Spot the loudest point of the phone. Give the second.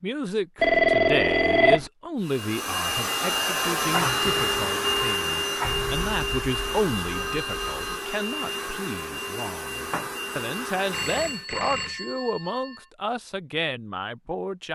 1 s.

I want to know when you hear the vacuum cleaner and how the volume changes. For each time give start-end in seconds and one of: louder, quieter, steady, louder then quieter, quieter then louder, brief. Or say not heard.
2.2-11.4 quieter.